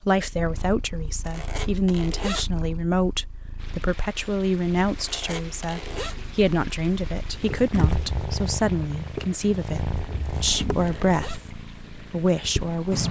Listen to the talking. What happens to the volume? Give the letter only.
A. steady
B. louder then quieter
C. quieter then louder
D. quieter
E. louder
A.